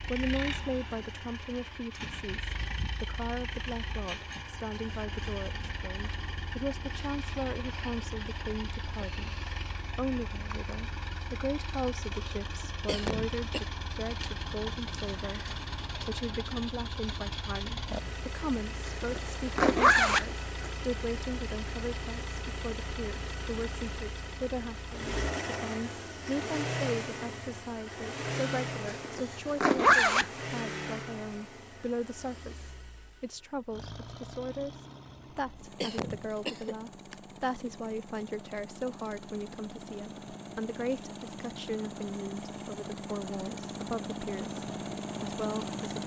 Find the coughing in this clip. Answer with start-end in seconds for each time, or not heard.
12.4-13.7, 35.4-37.1.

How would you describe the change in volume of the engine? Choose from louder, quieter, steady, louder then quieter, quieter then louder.
steady.